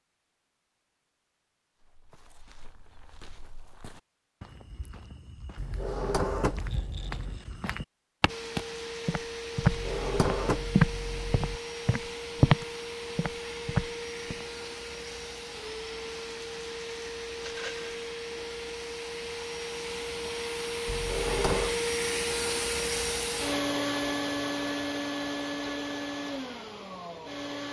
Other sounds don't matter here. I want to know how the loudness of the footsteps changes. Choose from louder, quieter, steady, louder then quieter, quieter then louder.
louder.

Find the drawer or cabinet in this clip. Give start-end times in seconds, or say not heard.
5.5-7.4, 9.6-11.6, 20.9-21.8.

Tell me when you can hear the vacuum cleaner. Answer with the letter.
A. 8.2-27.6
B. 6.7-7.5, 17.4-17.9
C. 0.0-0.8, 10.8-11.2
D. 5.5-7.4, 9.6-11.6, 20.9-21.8
A.